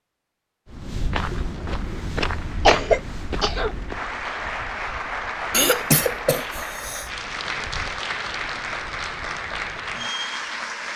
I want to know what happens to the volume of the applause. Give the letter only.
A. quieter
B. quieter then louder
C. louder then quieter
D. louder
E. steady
D.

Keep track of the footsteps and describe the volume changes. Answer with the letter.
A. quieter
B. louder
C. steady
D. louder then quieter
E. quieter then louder
A.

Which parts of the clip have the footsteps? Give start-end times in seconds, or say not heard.
0.7-9.9.